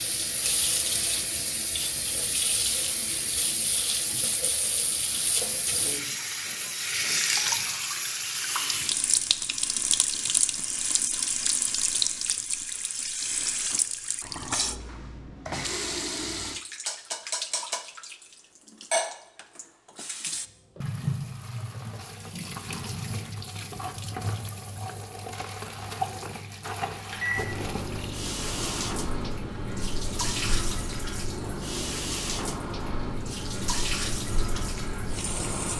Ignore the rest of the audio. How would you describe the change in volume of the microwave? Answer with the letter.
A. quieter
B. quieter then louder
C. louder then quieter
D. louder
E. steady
E.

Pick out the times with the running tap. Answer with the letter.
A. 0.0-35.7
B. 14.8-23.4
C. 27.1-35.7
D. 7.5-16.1
A.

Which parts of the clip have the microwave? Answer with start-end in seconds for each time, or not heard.
27.1-35.7.